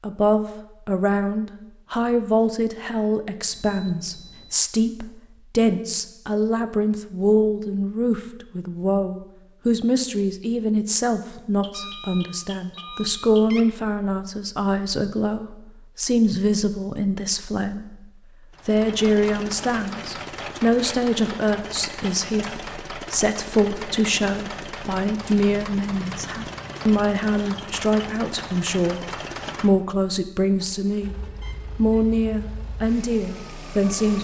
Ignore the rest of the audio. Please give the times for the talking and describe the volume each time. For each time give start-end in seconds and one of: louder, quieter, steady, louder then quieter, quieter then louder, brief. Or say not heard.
0.0-31.1 steady
31.8-34.1 brief.